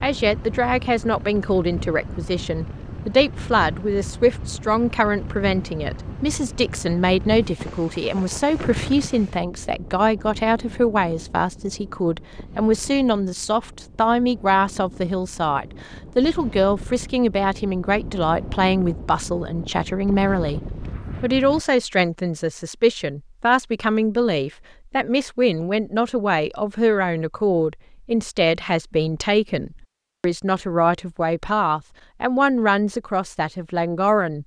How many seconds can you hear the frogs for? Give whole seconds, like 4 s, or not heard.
not heard.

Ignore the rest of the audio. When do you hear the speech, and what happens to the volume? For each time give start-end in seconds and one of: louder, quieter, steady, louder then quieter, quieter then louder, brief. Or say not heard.
0.0-34.4 steady.